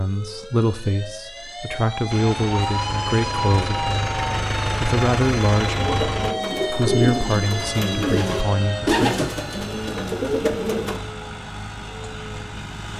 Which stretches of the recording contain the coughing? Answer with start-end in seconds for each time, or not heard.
not heard.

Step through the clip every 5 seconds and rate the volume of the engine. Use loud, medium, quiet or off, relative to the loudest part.
loud, loud, medium.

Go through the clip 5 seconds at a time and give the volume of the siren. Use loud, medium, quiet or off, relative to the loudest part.
loud, loud, quiet.